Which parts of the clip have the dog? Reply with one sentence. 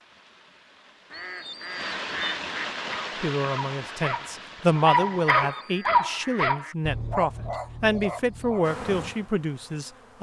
The dog can be heard from 2.8 to 8.8 s.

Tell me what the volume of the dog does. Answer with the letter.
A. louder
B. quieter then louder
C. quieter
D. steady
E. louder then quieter
E.